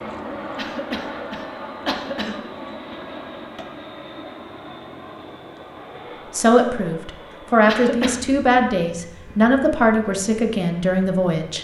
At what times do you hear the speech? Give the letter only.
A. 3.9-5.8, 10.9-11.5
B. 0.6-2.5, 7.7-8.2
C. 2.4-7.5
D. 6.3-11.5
D.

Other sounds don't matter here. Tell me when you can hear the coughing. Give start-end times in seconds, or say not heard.
0.6-2.5, 7.7-8.2.